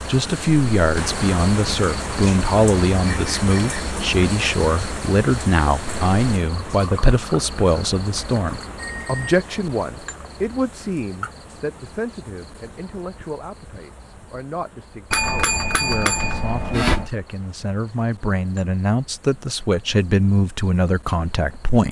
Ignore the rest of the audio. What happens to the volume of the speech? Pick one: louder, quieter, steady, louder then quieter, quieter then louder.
quieter then louder.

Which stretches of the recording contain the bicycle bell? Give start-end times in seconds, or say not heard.
3.0-3.8, 8.8-9.3, 15.1-17.1.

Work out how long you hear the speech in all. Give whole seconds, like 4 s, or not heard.
22 s.